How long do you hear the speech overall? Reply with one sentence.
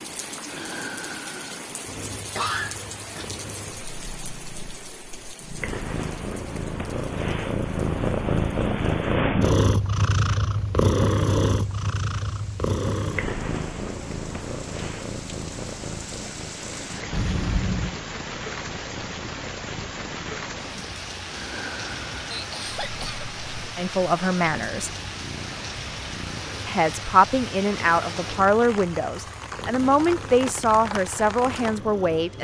The speech can be heard for 7 seconds in total.